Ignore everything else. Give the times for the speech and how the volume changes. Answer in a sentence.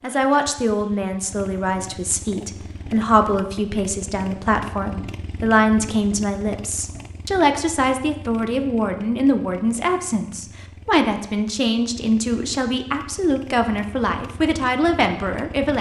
You can hear the speech from 0.0 to 15.7 s, at a steady volume.